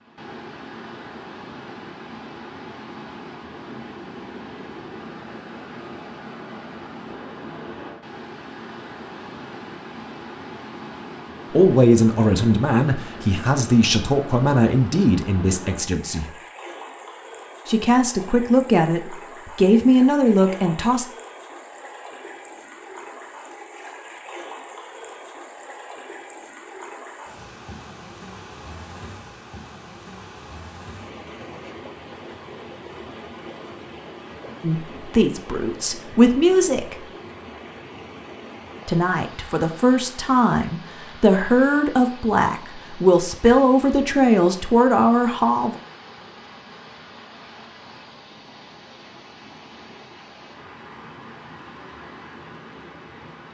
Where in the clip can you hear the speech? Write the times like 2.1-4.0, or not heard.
11.5-16.3, 17.6-21.1, 34.6-37.0, 38.9-45.8.